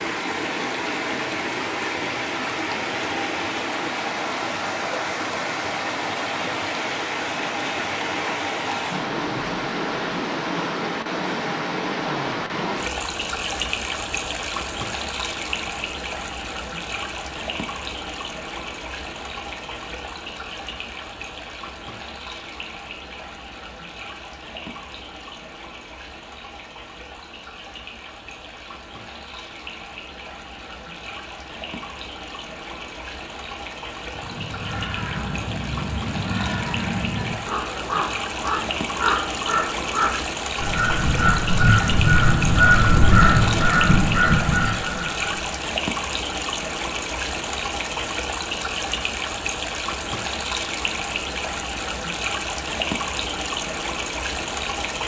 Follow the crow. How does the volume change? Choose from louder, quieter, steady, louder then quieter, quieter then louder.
louder.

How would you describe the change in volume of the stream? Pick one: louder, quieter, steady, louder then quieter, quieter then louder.
quieter then louder.